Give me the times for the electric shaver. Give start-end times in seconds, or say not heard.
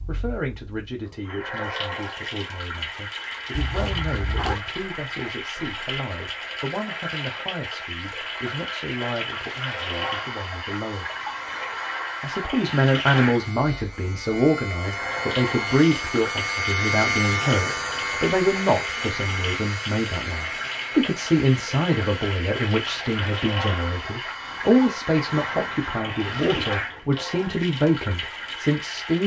9.3-25.7.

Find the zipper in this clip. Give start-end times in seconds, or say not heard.
3.5-4.6, 25.5-26.9.